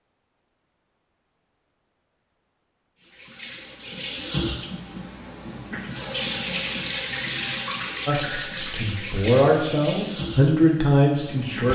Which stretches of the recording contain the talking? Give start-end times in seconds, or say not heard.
8.1-11.7.